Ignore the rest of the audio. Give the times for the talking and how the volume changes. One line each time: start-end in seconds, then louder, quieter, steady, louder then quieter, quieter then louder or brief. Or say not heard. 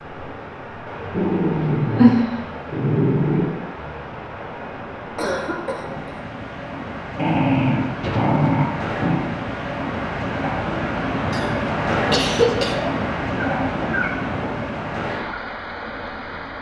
not heard.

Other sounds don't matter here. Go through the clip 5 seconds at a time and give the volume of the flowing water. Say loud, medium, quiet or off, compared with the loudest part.
medium, medium, loud, medium.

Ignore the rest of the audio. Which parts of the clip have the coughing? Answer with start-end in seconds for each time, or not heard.
5.2-6.2, 11.3-12.8.